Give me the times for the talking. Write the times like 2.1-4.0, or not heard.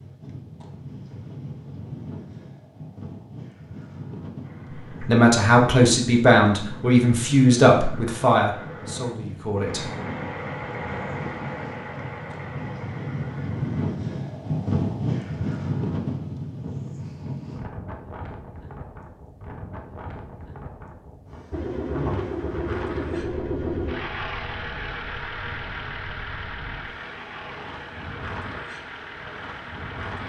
5.0-9.9.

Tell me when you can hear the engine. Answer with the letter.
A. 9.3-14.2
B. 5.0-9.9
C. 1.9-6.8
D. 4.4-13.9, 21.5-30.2
D.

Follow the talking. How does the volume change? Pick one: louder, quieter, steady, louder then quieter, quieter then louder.
quieter.